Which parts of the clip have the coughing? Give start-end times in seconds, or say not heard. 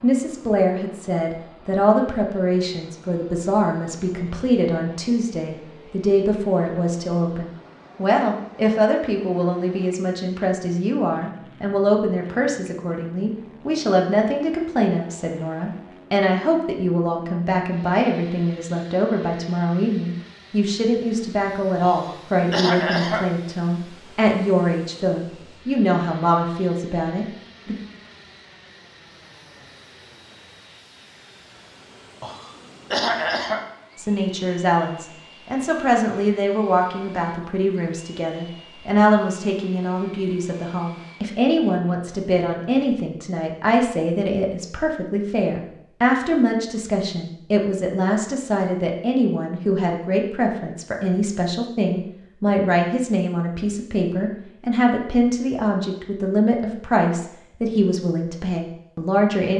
21.8-23.2, 32.2-33.6.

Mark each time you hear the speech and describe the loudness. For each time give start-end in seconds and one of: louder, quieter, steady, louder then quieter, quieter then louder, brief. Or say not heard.
0.0-27.8 steady
34.0-59.5 steady.